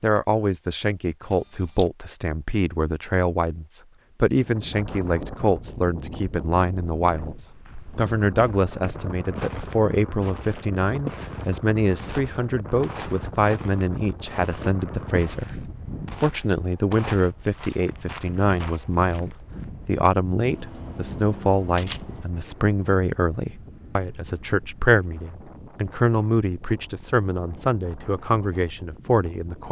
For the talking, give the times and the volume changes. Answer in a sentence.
The talking can be heard from 0.0 to 29.6 s, at a steady volume.